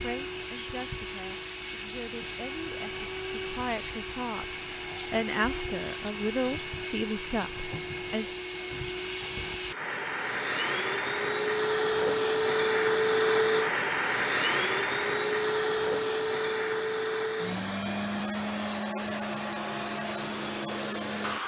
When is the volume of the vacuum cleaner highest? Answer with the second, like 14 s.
13 s.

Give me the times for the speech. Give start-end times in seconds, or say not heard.
0.0-8.3.